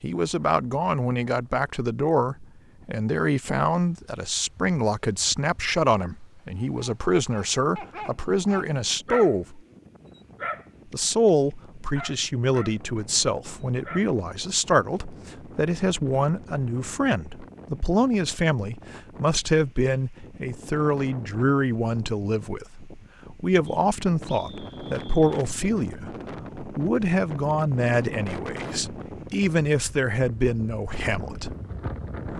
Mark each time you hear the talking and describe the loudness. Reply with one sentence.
The talking can be heard from 0.0 to 9.6 s, at a steady volume; and from 10.9 to 31.6 s, at a steady volume.